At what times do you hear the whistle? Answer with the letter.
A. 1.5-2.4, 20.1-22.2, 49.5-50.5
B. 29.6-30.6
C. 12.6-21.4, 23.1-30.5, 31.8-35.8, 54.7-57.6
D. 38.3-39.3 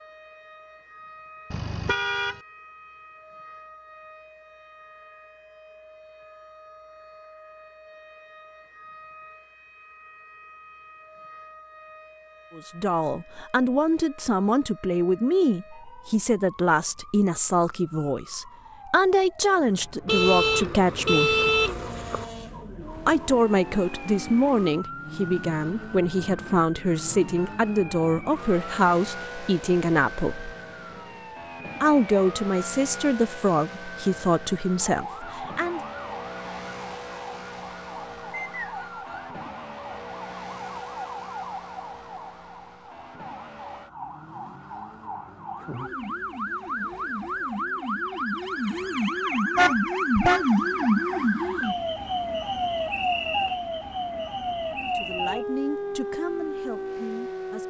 D.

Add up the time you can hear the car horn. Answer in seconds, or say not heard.
4 s.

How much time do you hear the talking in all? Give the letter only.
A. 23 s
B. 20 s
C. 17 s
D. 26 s
A.